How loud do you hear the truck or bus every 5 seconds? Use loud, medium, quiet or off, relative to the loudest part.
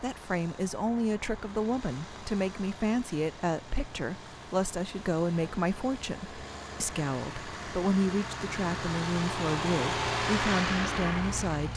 quiet, medium, loud.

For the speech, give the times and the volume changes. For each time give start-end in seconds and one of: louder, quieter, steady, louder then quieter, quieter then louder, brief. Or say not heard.
0.0-11.7 steady.